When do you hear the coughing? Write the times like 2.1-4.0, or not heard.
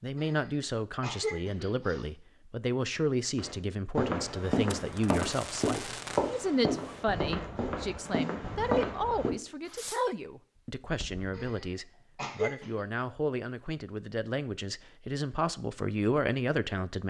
0.1-2.0, 11.3-12.8.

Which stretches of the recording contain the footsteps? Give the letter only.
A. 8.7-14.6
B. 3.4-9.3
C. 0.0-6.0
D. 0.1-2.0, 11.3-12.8
B.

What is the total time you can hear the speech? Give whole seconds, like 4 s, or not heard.
17 s.